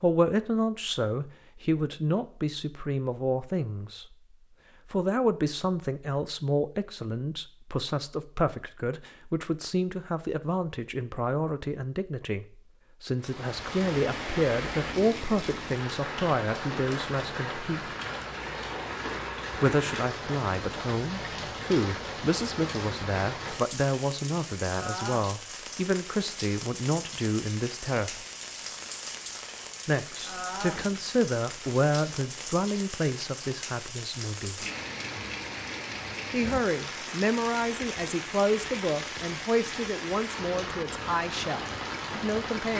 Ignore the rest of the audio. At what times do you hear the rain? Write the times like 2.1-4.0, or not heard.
13.2-42.7.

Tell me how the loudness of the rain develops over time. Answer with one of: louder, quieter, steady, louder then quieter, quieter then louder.
steady.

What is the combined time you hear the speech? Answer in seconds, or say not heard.
37 s.